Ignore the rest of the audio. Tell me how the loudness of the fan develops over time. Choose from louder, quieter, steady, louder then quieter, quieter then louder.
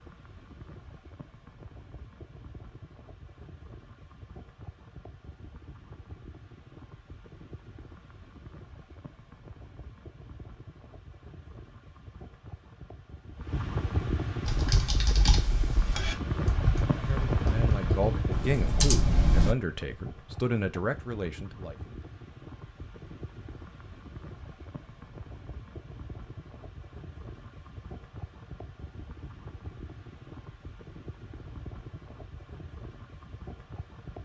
louder then quieter.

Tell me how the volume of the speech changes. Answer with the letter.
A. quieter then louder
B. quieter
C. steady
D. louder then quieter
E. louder
C.